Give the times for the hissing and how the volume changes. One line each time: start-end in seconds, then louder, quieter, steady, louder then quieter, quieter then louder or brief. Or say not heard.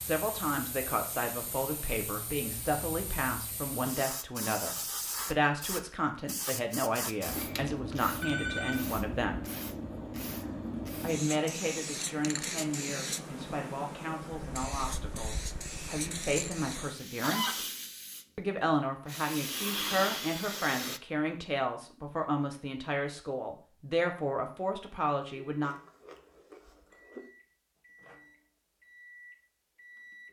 0.0-21.0 louder.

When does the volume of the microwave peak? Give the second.
30 s.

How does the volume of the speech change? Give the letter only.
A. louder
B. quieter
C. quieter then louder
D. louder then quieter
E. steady
E.